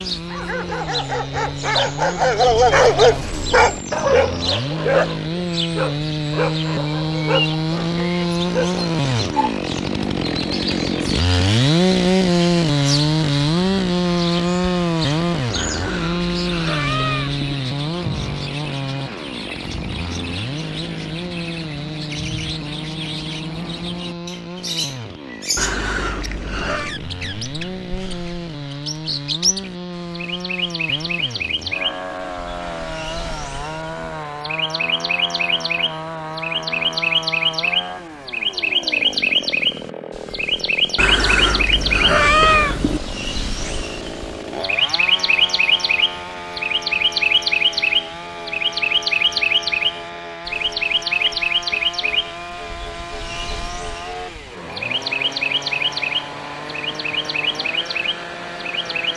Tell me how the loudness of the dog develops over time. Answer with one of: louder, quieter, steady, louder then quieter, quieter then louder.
louder then quieter.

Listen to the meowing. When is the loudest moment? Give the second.
42 s.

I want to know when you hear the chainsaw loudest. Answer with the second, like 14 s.
12 s.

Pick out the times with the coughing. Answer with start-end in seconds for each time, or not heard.
not heard.